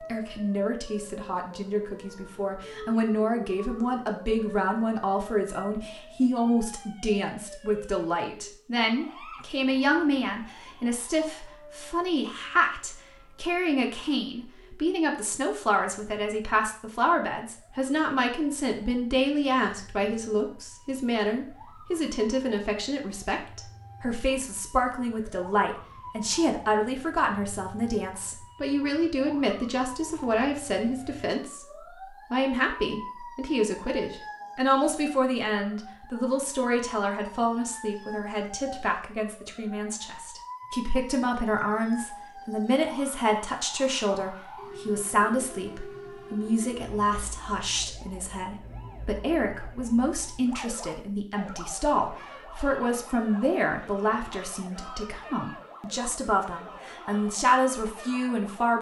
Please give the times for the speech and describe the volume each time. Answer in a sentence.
You can hear the speech from 0.1 to 31.6 s, at a steady volume; and from 32.3 to 58.7 s, at a steady volume.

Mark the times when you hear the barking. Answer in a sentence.
You can't hear the barking here.